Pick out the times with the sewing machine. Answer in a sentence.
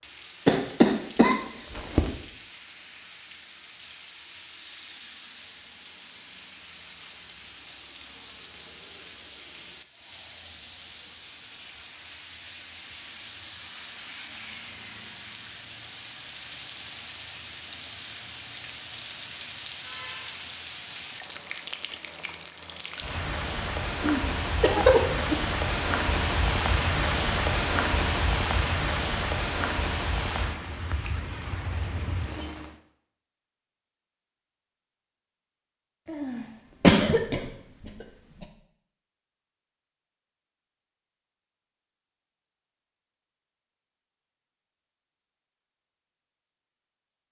You can't hear the sewing machine here.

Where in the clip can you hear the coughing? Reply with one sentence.
You can hear the coughing from 0.5 to 2.1 s, from 24.0 to 25.4 s and from 36.0 to 38.5 s.